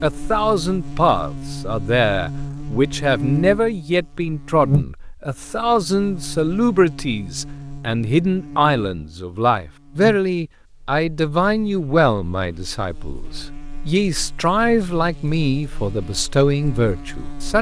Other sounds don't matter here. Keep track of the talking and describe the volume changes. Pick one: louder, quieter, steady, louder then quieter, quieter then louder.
steady.